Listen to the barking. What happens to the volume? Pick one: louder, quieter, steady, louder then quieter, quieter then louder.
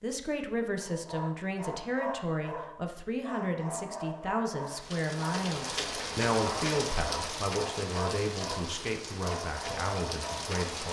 steady.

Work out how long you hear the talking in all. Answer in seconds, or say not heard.
11 s.